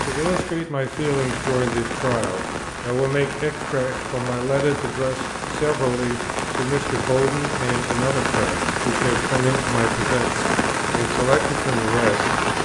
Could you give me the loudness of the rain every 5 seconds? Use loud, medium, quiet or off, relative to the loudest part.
medium, loud, loud.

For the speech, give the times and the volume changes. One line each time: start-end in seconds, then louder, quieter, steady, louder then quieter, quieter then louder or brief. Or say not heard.
0.0-12.3 steady.